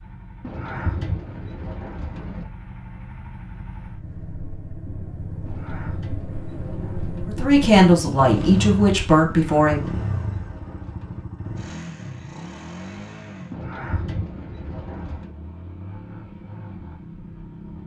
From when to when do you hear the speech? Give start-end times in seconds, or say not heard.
7.2-9.8.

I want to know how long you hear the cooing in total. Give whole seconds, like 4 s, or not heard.
8 s.